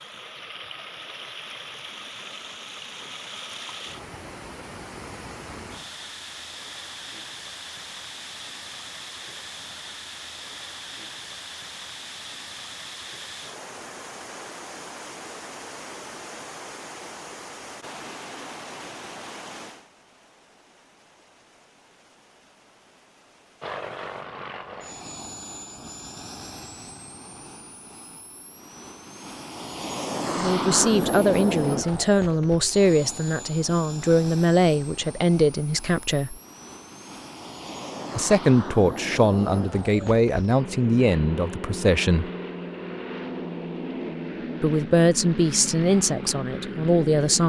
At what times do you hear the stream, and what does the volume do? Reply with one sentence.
The stream can be heard from 0.0 to 24.2 s, getting quieter.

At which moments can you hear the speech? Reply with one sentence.
You can hear the speech from 30.3 to 36.4 s, from 38.1 to 42.3 s and from 44.6 to 47.4 s.